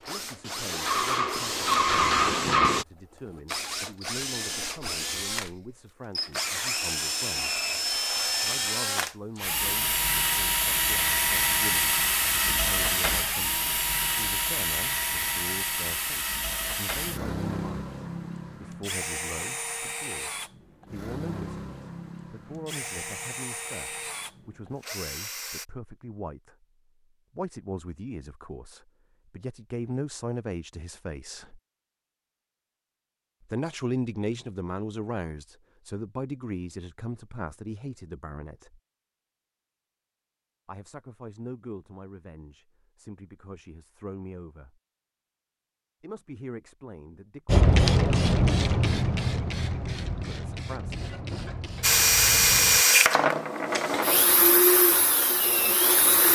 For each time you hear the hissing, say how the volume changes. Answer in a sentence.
You can hear the hissing briefly from 0.0 to 2.9 s; and from 47.5 to 52.9 s, getting quieter.